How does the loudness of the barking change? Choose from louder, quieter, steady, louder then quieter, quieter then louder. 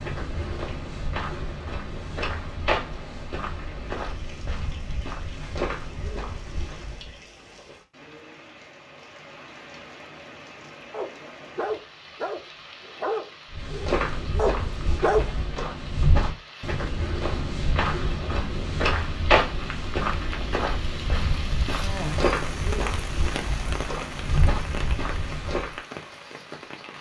quieter then louder.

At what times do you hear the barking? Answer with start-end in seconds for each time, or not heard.
10.9-15.3.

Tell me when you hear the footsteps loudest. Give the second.
19 s.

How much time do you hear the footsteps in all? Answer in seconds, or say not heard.
19 s.